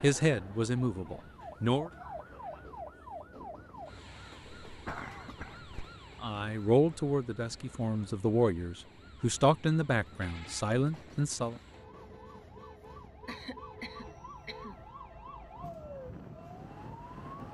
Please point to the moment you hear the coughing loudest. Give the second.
5 s.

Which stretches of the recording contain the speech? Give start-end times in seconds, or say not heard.
0.0-1.9, 6.2-11.6.